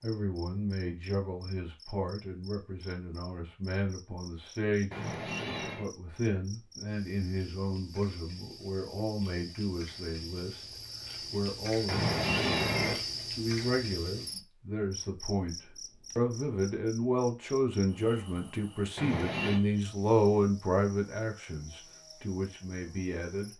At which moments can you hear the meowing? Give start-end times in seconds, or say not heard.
4.9-5.8, 11.8-13.0, 18.9-19.6.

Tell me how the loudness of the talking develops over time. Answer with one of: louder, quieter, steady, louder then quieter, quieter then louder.
louder.